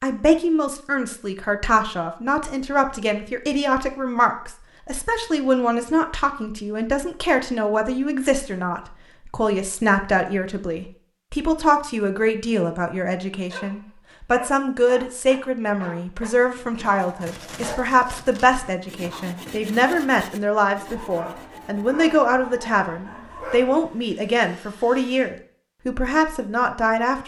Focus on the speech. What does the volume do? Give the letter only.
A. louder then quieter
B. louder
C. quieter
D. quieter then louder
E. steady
E.